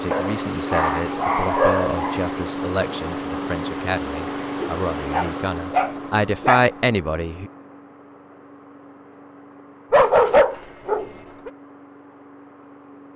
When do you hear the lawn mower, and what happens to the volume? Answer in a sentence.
You can hear the lawn mower from 0.0 to 13.1 s, getting quieter.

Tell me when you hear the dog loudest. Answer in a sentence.
The volume of the dog peaks at 10 seconds.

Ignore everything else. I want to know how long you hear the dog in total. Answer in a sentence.
The dog can be heard for 6 seconds in total.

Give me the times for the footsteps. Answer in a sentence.
You can't hear the footsteps here.